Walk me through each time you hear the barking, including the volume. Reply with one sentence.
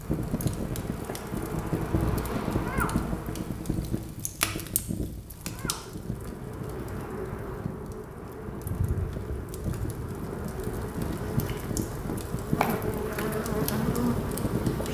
The barking can't be heard in this clip.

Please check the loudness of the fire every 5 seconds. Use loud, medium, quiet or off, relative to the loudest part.
loud, medium, loud.